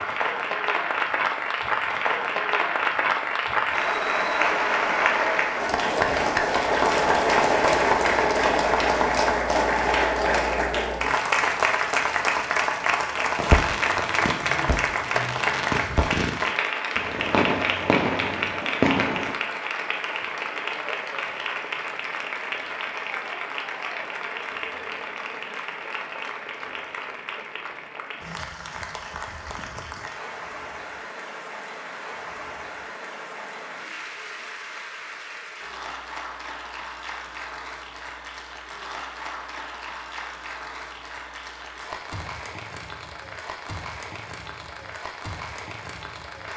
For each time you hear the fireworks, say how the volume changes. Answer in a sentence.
The fireworks can be heard from 13.3 to 19.4 s, getting louder.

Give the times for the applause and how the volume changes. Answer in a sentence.
You can hear the applause from 0.0 to 46.5 s, getting quieter.